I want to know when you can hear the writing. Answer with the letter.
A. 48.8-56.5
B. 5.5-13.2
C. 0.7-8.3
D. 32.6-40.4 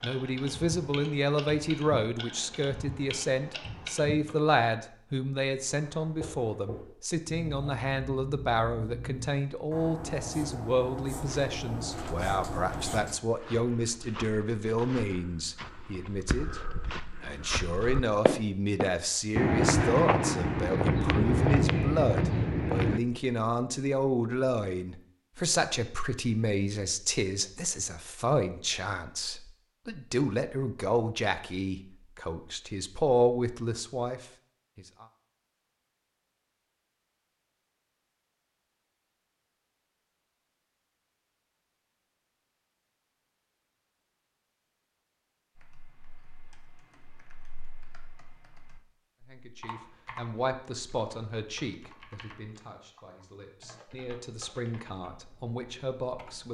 B.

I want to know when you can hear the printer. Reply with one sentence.
The printer can't be heard in this clip.